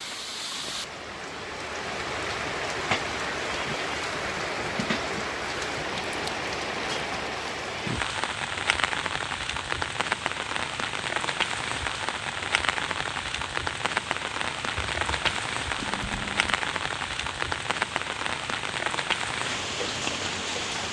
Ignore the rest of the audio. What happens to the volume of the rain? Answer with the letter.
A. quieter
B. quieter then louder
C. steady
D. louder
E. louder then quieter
C.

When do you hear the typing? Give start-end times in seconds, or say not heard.
14.8-16.6.